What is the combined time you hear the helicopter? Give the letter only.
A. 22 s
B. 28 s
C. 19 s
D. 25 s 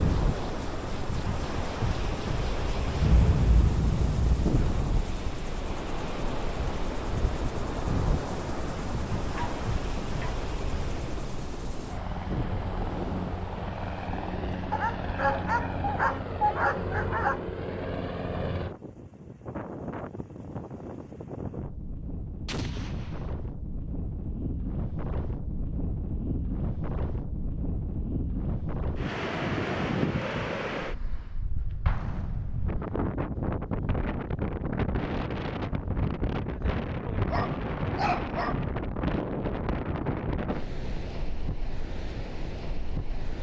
C.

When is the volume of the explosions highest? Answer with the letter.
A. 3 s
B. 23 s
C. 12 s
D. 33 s
A.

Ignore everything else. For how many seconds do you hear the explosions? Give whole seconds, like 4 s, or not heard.
4 s.